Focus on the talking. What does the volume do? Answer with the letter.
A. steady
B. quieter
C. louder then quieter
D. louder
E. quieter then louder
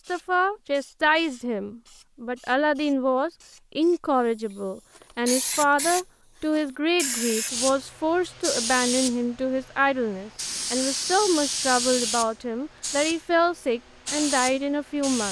A.